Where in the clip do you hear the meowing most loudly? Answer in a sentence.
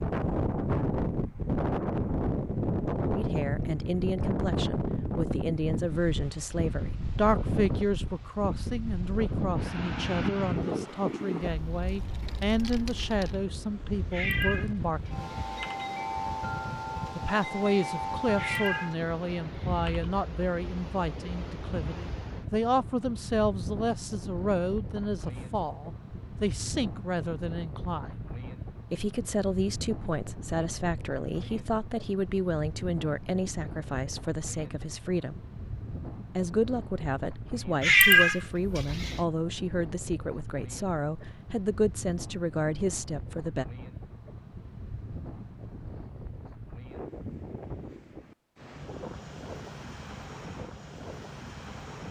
The volume of the meowing peaks at 38 seconds.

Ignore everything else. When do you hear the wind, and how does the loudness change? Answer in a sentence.
You can hear the wind from 0.0 to 52.0 s, getting quieter.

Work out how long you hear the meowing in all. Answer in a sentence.
You can hear the meowing for 5 seconds altogether.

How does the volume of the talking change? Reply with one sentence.
The loudness of the talking stays about the same.